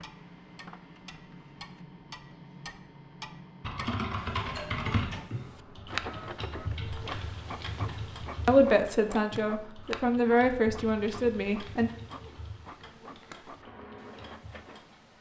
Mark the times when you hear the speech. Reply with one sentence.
You can hear the speech from 8.4 to 11.9 s.